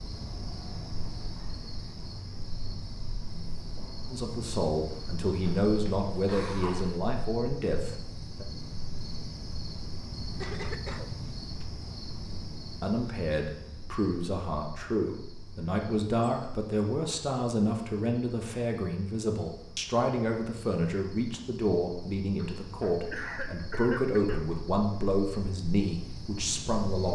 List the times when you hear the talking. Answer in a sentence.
You can hear the talking from 4.0 to 8.4 s and from 12.8 to 27.0 s.